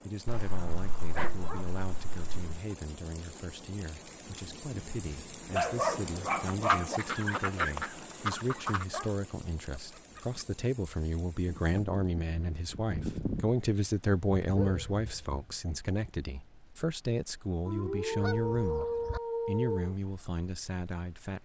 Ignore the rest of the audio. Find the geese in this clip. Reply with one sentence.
You can hear the geese from 0.2 to 2.5 s, from 6.5 to 8.8 s, from 11.5 to 13.5 s and from 18.2 to 19.2 s.